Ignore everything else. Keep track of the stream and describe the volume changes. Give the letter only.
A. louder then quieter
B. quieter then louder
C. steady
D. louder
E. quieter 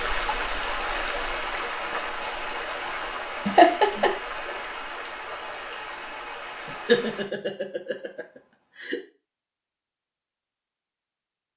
E.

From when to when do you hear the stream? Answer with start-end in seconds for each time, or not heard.
0.0-7.3.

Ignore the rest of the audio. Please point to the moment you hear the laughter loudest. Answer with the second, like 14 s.
4 s.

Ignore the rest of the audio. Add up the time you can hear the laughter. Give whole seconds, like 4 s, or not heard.
3 s.